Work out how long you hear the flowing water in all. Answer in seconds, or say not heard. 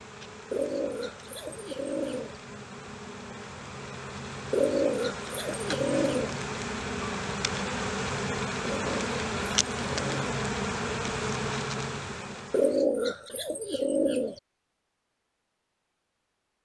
not heard.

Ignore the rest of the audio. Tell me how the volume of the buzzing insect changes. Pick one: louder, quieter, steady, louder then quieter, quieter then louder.
louder.